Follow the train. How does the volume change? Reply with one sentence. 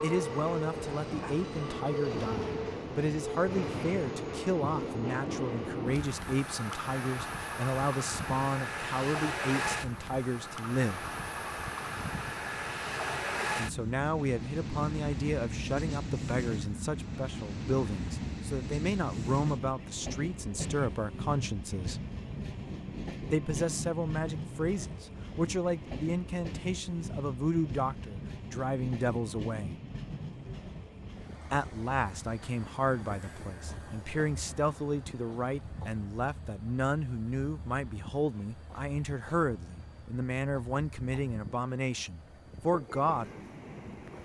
The volume of the train goes down.